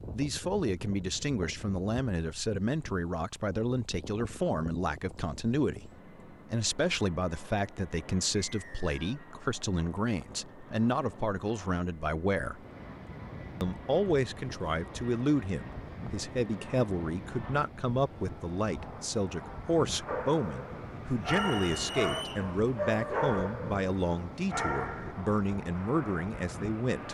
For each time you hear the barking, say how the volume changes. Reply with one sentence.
You can hear the barking from 20.1 to 25.1 s, getting louder.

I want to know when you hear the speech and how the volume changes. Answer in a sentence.
You can hear the speech from 0.1 to 12.6 s, at a steady volume; and from 13.6 to 27.0 s, at a steady volume.